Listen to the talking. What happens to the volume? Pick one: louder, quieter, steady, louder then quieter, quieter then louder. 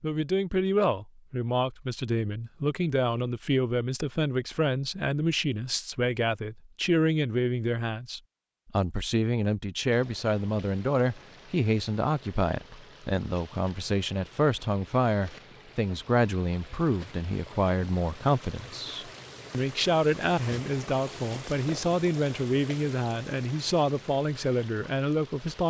steady.